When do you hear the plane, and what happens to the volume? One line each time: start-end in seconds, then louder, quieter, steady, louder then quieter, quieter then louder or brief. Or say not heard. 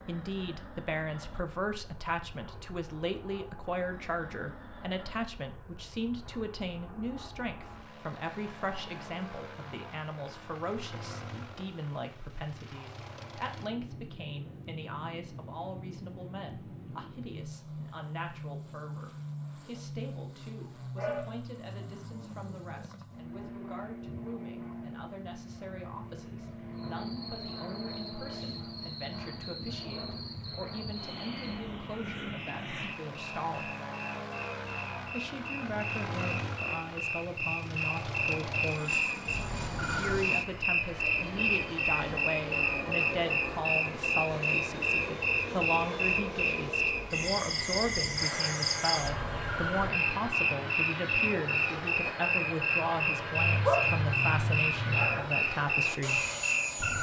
0.0-56.9 louder.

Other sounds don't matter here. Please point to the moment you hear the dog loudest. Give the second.
54 s.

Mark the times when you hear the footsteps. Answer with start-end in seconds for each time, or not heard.
not heard.